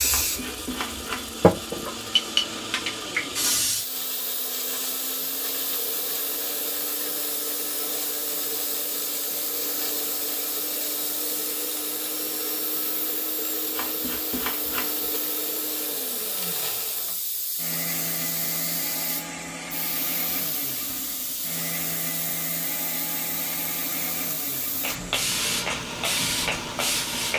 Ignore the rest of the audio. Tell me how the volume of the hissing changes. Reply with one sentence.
The loudness of the hissing goes down, then up.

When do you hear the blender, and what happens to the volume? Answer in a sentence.
The blender can be heard from 0.0 to 27.3 s, at a steady volume.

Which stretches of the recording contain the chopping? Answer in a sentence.
The chopping can be heard from 0.1 to 1.4 s and from 13.7 to 15.2 s.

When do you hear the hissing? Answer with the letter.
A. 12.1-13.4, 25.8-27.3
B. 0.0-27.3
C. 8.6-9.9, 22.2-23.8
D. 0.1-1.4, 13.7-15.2
B.